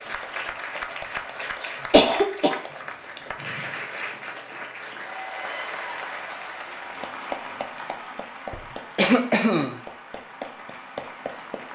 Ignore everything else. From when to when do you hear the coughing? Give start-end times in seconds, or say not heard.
1.6-2.6, 8.5-9.8.